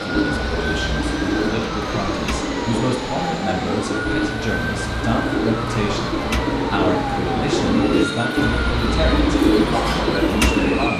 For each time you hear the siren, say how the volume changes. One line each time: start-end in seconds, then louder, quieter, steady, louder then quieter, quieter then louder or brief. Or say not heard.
0.0-10.9 steady.